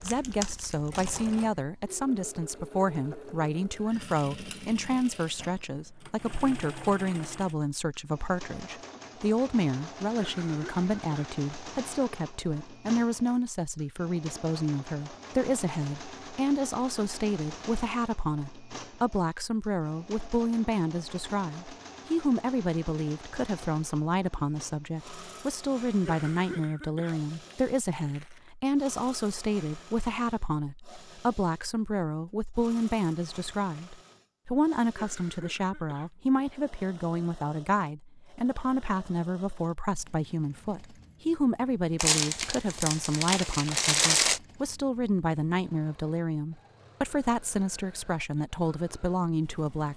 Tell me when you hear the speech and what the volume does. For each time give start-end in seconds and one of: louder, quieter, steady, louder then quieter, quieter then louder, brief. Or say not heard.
0.0-49.9 steady.